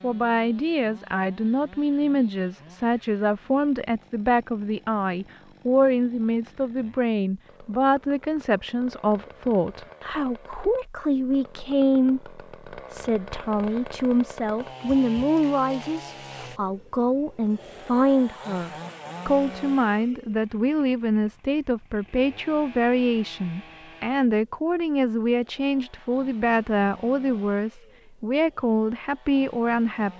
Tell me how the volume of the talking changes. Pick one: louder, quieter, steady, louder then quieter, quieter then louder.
steady.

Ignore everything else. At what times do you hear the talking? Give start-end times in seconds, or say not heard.
0.0-30.1.